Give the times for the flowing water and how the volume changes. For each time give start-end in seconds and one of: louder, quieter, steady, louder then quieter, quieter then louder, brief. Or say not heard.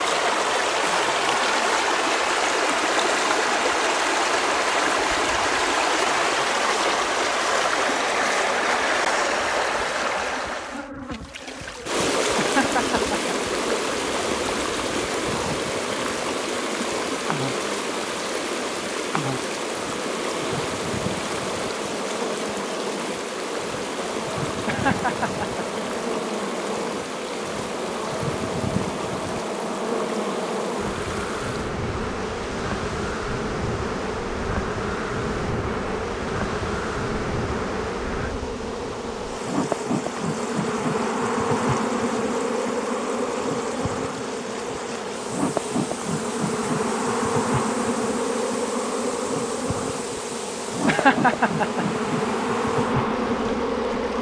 0.0-54.1 quieter.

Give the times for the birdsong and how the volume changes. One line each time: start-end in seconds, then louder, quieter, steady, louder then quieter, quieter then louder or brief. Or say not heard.
not heard.